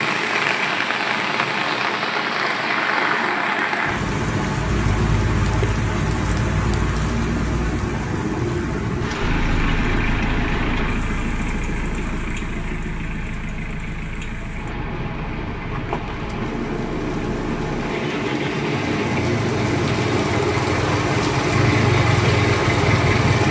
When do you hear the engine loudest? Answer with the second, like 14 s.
22 s.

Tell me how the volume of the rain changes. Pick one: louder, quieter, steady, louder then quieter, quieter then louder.
quieter then louder.